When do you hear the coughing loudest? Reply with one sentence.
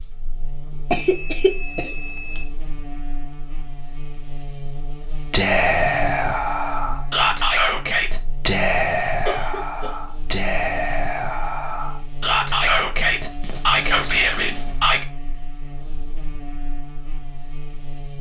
The volume of the coughing peaks at 1 second.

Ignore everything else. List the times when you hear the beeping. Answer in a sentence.
You can hear the beeping from 1.1 to 2.5 s.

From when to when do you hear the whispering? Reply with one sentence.
You can hear the whispering from 5.3 to 15.1 s.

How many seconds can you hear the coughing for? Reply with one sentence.
The coughing can be heard for 3 seconds in total.